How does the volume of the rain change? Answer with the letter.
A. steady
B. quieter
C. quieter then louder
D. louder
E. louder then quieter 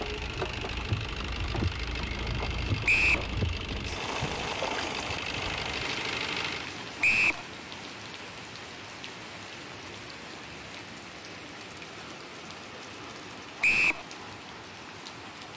B.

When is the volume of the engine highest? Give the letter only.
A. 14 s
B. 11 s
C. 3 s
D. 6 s
D.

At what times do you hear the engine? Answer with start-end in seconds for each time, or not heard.
0.0-6.8.